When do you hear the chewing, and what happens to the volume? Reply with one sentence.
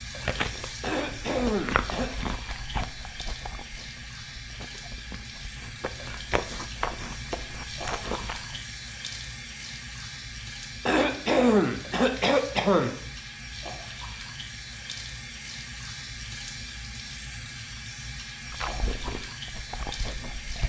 The chewing can be heard from 0.1 to 8.6 s, getting quieter then louder; and briefly from 18.5 to 20.6 s.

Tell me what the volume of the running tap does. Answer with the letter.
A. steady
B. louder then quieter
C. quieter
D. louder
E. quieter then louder
A.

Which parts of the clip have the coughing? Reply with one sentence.
You can hear the coughing from 0.8 to 2.1 s and from 10.8 to 12.9 s.